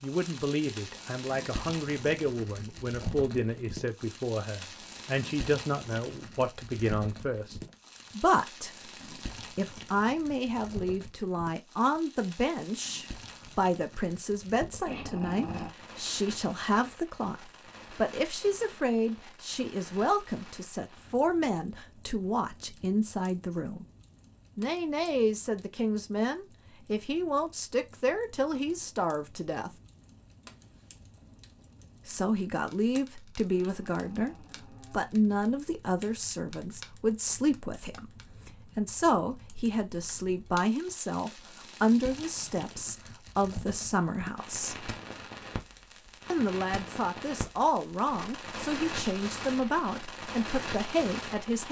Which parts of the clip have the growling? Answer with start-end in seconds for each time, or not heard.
14.8-15.7, 33.5-35.1.